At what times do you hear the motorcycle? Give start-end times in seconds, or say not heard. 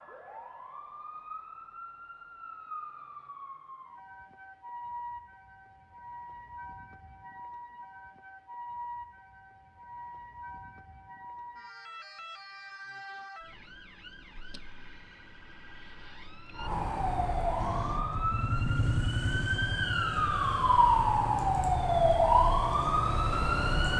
17.6-23.9.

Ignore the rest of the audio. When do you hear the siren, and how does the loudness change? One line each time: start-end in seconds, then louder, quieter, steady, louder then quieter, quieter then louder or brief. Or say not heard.
0.0-23.9 louder.